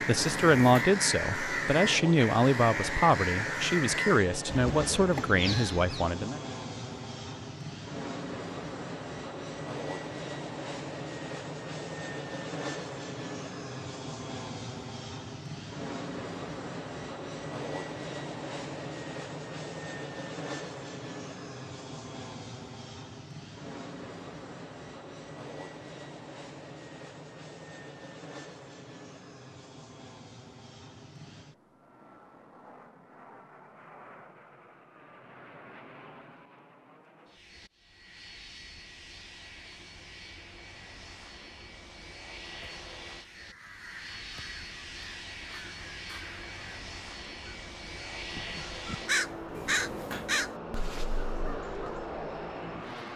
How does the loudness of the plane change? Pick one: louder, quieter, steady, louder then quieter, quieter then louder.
quieter then louder.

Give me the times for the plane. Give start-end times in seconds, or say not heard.
0.0-53.1.